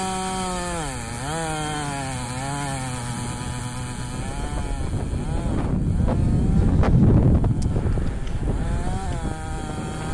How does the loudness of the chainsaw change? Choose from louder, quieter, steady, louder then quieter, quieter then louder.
quieter then louder.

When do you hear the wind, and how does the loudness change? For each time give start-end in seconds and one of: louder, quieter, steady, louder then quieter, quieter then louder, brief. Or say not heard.
0.0-10.1 louder then quieter.